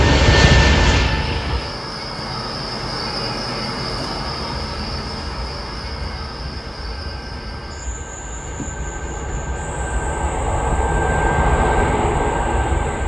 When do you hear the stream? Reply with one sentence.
The stream can't be heard in this clip.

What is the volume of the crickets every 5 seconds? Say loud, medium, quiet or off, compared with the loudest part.
loud, medium, quiet.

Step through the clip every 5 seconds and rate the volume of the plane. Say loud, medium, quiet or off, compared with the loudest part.
loud, quiet, loud.